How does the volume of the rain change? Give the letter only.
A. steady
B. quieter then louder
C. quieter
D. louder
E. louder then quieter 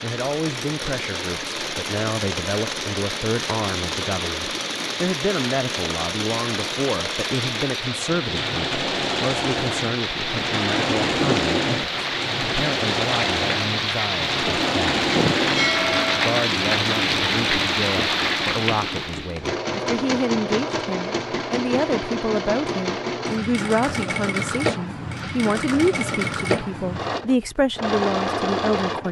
D.